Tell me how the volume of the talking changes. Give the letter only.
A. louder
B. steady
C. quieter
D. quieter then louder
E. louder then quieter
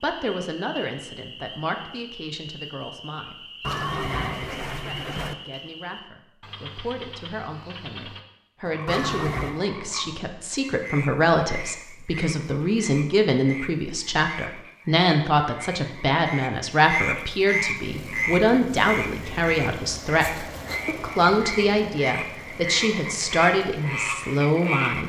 A.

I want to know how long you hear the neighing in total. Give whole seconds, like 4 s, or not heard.
3 s.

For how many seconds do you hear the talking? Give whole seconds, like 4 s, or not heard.
25 s.